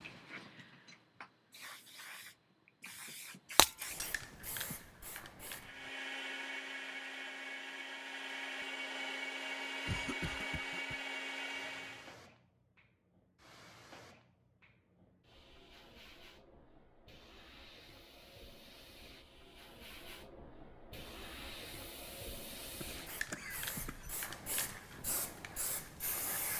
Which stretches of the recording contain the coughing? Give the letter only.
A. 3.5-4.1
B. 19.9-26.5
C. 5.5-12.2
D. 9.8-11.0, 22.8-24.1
D.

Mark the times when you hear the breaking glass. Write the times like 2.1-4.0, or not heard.
3.5-4.1.